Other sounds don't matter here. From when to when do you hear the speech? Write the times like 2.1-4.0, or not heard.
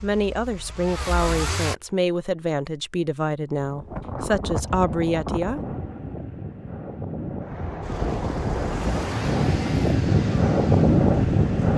0.0-5.6.